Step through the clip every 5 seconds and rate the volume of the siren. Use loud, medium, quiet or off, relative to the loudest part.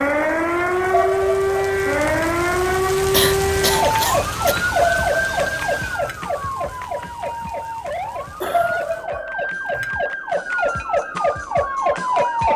loud, medium, loud.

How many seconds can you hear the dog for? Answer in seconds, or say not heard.
4 s.